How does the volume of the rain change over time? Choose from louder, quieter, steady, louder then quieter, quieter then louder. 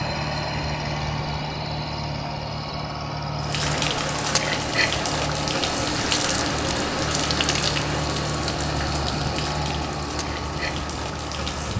quieter.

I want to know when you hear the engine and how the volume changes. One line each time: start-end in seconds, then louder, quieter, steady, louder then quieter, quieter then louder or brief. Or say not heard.
0.0-11.7 steady.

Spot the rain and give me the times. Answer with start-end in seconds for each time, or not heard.
3.4-11.7.